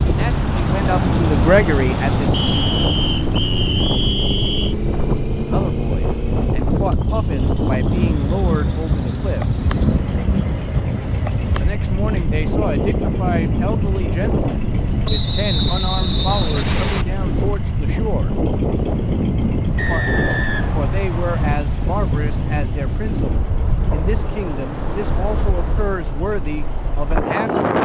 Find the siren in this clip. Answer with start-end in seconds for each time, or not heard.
not heard.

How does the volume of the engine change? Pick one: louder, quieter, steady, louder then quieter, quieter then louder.
quieter.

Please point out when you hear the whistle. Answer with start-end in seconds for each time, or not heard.
2.3-4.8, 15.1-17.1, 19.8-21.5.